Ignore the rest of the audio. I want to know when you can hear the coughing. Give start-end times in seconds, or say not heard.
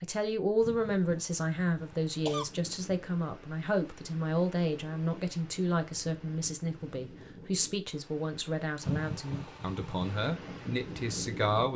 0.6-2.5, 8.8-10.2.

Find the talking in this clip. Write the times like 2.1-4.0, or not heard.
0.0-11.7.